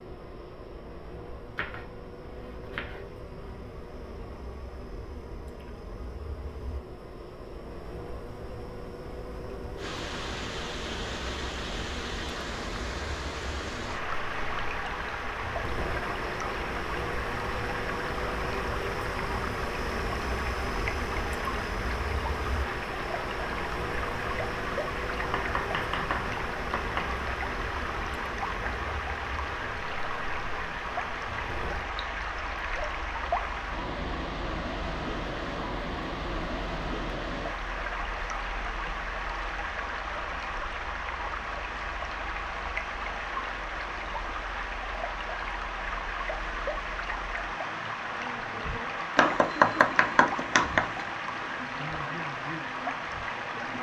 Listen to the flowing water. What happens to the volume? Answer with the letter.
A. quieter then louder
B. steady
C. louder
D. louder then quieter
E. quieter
B.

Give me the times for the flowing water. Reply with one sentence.
The flowing water can be heard from 9.8 to 53.7 s.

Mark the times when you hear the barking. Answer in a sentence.
You can't hear the barking here.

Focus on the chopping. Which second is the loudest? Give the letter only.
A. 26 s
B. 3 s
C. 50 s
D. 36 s
C.